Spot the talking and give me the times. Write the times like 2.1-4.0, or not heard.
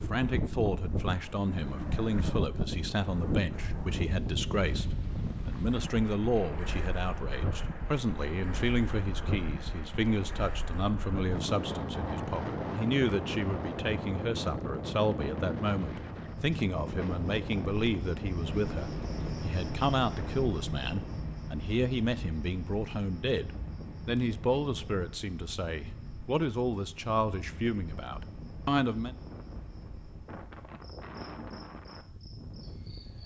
0.0-29.1.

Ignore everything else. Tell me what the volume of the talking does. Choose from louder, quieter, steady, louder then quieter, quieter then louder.
steady.